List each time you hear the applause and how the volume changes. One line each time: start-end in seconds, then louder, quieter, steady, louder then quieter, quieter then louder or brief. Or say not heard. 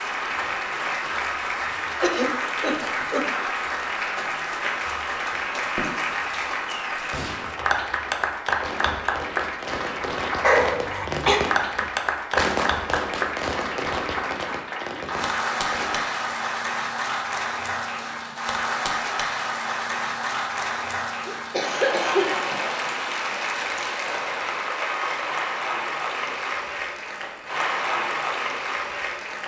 0.0-29.4 steady.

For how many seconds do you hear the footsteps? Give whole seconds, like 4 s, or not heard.
not heard.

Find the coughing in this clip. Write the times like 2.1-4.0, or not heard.
2.0-3.5, 10.4-11.4, 21.2-22.6.